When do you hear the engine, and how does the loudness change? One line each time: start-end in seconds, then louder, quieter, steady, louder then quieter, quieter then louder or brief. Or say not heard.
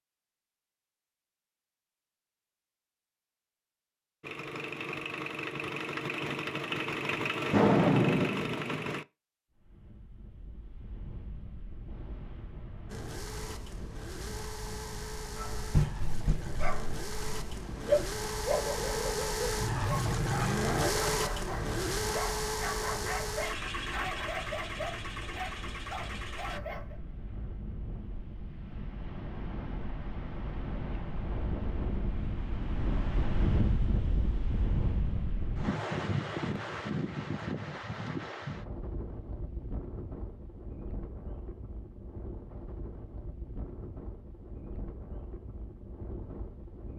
4.2-9.1 louder
12.9-26.6 louder then quieter.